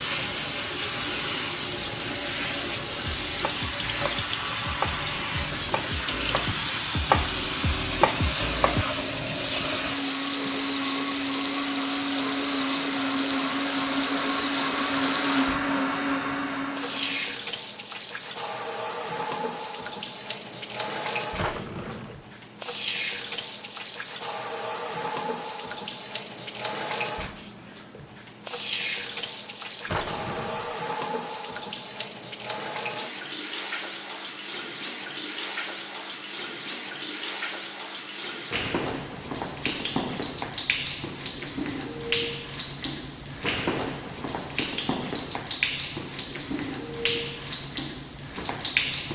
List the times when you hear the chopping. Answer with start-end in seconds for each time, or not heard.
2.9-8.8.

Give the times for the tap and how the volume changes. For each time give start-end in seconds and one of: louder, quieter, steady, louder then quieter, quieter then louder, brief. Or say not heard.
0.0-49.1 steady.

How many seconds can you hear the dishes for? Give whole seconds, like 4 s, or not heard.
not heard.